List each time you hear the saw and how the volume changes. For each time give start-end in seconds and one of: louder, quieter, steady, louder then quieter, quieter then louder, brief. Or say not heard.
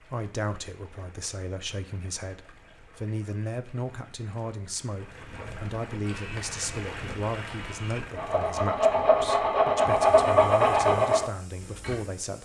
6.0-12.0 louder.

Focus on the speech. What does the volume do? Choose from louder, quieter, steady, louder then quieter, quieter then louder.
steady.